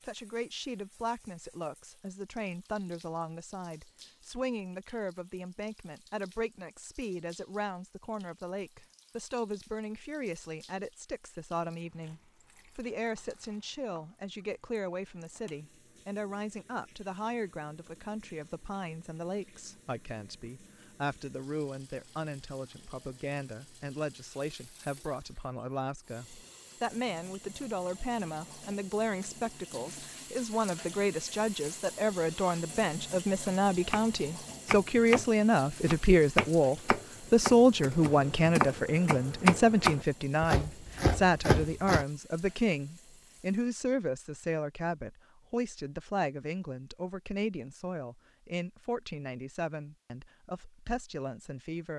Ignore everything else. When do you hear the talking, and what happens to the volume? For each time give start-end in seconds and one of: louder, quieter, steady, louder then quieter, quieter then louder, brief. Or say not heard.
0.0-51.9 louder then quieter.